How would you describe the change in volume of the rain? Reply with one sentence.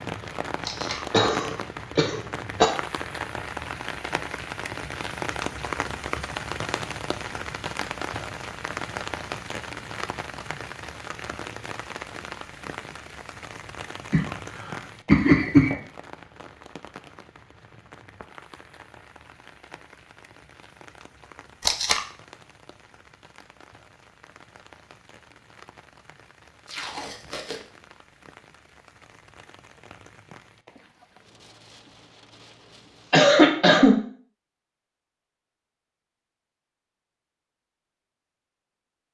The volume of the rain goes down.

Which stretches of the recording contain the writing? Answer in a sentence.
The writing can't be heard in this clip.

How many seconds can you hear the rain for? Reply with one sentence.
You can hear the rain for 33 seconds altogether.